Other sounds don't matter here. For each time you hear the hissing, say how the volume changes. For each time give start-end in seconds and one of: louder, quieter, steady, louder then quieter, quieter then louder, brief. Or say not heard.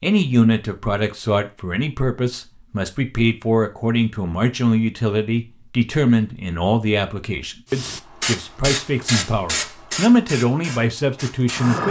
7.7-11.8 quieter.